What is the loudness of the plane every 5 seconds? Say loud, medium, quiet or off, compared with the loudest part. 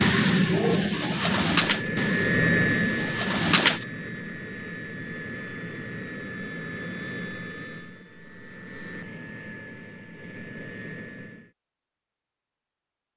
loud, medium, quiet.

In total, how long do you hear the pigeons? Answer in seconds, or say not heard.
4 s.